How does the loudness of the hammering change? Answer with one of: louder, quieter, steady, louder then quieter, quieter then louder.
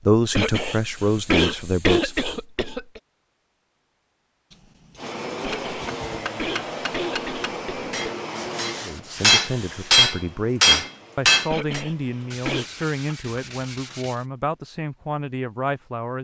louder.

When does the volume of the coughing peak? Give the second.
2 s.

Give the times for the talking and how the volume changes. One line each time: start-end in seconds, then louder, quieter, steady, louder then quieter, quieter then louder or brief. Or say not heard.
0.1-2.1 brief
8.8-16.2 steady.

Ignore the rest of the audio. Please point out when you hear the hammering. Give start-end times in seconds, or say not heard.
5.5-11.8.